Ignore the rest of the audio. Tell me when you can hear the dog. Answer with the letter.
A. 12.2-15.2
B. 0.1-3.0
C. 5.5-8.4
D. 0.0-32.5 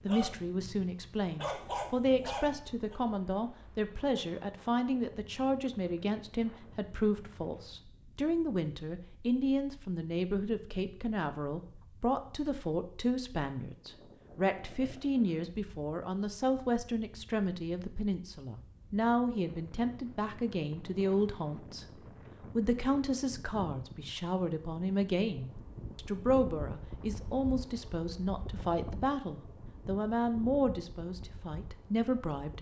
B.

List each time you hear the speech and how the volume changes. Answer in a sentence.
The speech can be heard from 0.0 to 32.5 s, at a steady volume.